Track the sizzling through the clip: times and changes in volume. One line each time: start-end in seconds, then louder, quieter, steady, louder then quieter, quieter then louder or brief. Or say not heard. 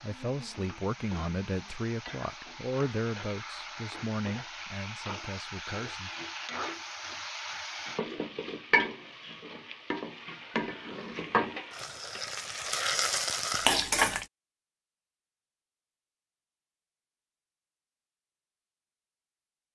0.0-14.2 louder.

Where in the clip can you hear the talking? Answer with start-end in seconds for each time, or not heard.
0.0-6.2.